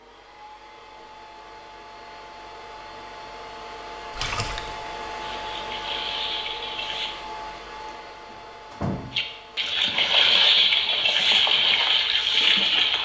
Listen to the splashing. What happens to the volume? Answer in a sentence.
The loudness of the splashing goes up.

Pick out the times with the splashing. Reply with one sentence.
The splashing can be heard from 4.1 to 7.2 s and from 9.1 to 13.0 s.